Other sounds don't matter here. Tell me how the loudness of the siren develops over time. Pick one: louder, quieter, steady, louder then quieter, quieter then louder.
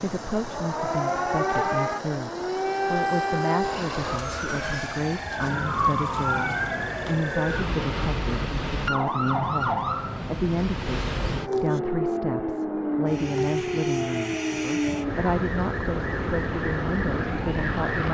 steady.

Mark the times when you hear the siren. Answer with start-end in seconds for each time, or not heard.
0.2-18.0.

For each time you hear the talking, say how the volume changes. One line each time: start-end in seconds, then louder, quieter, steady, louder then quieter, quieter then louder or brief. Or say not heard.
0.0-18.0 steady.